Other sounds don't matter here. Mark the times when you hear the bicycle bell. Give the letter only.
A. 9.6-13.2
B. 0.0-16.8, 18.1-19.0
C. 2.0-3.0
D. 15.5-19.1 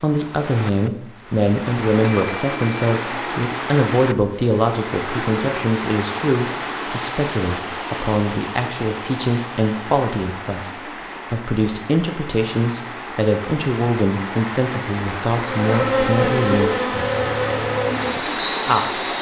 C.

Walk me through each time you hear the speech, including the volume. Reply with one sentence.
You can hear the speech from 0.0 to 16.8 s, at a steady volume; and briefly from 18.1 to 19.0 s.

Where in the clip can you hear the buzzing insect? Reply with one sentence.
You can hear the buzzing insect from 15.5 to 19.1 s.